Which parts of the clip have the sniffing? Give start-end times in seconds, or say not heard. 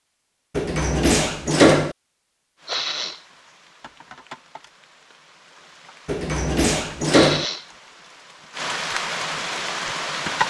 2.6-3.2, 7.1-7.7.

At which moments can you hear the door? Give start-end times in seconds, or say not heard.
0.6-1.9, 6.0-7.5.